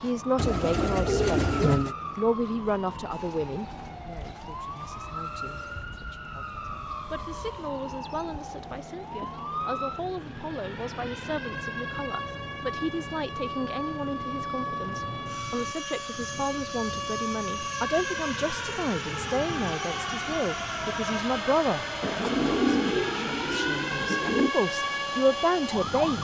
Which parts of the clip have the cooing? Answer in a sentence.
The cooing can be heard from 0.3 to 1.9 s and from 22.0 to 24.6 s.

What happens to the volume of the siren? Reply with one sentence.
The loudness of the siren goes up.